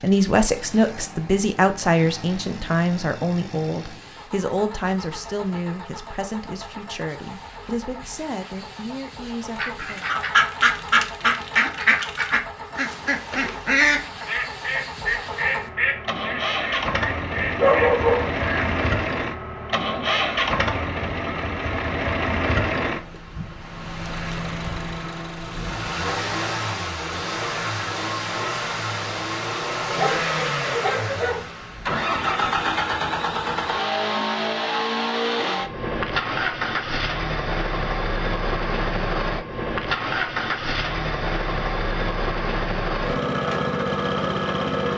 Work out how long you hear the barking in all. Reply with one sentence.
You can hear the barking for 2 seconds altogether.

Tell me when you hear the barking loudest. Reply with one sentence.
The volume of the barking peaks at 18 seconds.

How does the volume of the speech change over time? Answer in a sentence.
The loudness of the speech goes down.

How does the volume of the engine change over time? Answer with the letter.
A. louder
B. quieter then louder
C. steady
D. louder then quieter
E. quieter
A.